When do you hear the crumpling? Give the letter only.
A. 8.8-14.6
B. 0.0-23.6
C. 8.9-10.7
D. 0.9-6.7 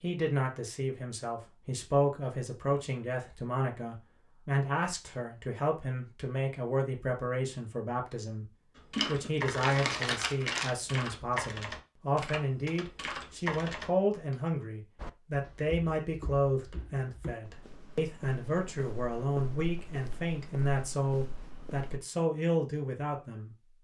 C.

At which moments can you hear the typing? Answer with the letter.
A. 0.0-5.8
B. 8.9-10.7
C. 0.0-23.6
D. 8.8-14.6
D.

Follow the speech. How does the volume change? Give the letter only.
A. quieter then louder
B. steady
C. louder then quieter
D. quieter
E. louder
B.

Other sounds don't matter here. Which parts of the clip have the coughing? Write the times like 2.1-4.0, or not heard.
not heard.